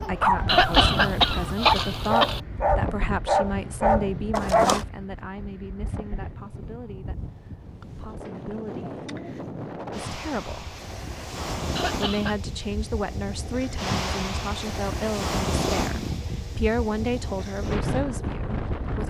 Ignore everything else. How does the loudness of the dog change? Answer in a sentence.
The loudness of the dog goes up.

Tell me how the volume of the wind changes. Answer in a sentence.
The volume of the wind goes down, then up.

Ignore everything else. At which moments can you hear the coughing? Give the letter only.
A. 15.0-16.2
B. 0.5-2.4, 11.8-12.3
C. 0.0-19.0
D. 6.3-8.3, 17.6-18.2
B.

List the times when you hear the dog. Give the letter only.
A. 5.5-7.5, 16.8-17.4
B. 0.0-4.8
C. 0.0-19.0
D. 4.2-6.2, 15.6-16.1
B.